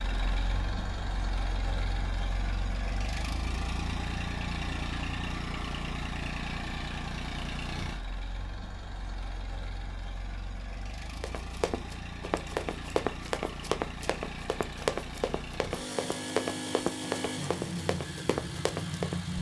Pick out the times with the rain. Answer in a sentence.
You can't hear the rain here.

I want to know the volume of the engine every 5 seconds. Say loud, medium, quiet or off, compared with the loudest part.
loud, loud, medium, loud.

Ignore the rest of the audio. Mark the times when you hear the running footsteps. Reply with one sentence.
You can hear the running footsteps from 11.2 to 19.1 s.